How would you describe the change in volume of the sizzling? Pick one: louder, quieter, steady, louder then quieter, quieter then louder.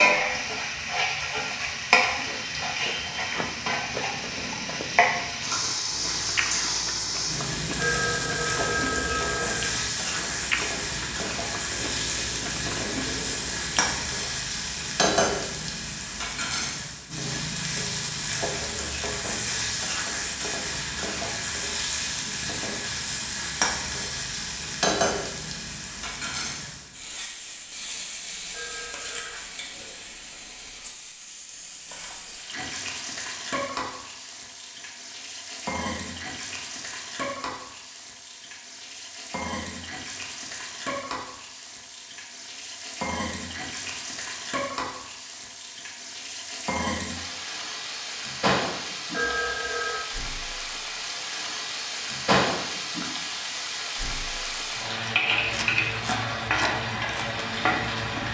quieter then louder.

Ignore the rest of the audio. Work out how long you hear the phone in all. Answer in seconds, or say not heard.
4 s.